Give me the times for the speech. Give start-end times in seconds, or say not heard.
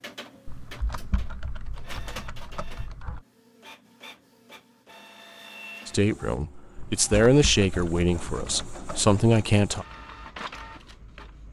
5.8-9.8.